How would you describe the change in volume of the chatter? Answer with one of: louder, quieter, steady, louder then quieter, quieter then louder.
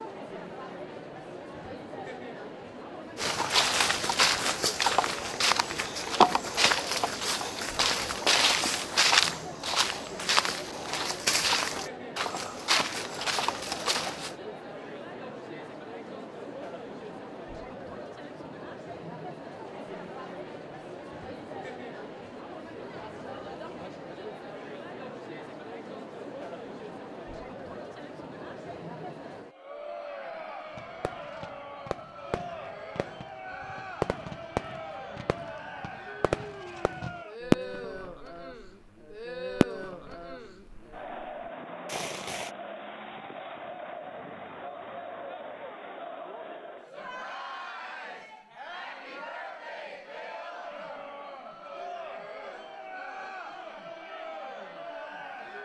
steady.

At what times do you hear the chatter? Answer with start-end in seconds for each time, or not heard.
0.0-55.6.